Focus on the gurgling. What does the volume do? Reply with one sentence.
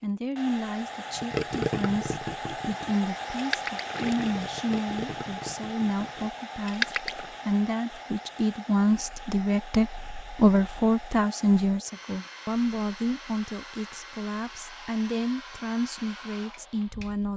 The volume of the gurgling goes down, then up.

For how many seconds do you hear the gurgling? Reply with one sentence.
You can hear the gurgling for 6 seconds altogether.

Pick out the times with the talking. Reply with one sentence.
You can hear the talking from 0.0 to 17.3 s.